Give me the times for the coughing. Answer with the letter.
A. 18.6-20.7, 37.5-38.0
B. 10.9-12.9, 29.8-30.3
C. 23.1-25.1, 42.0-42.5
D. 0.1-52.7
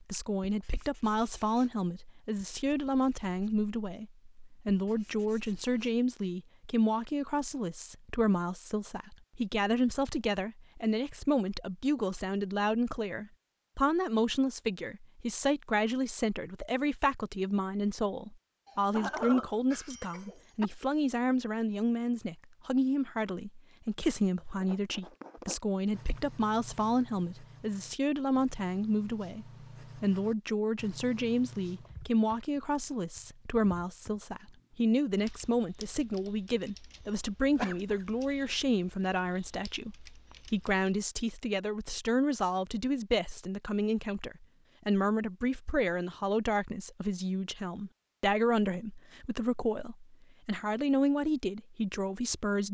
A.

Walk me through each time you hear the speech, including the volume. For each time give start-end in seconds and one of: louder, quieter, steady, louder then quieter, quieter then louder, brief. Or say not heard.
0.1-52.7 steady.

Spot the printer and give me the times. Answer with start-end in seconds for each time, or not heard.
not heard.